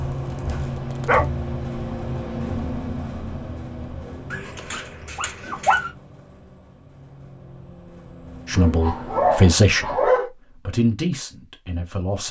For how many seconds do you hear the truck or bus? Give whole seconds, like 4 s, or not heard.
9 s.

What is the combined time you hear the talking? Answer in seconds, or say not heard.
4 s.